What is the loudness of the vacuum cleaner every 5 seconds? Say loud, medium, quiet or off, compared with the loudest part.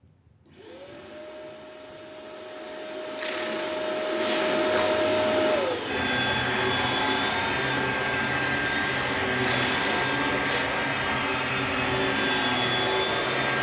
medium, loud, loud.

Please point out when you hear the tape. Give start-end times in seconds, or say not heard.
3.1-5.0, 9.4-10.7.